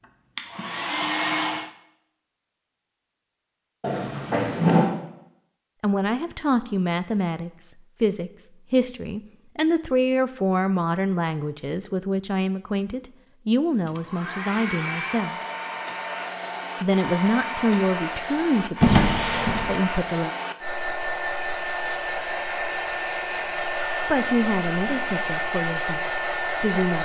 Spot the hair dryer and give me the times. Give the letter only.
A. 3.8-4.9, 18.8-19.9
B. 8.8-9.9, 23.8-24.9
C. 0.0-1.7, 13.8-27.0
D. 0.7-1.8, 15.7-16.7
C.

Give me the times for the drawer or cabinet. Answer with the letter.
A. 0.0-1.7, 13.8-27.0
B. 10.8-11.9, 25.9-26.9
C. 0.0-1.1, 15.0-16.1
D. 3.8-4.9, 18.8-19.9
D.